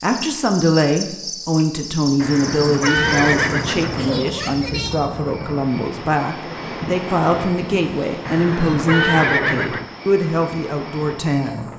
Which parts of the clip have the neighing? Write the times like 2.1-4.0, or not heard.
2.1-4.2, 8.2-9.9.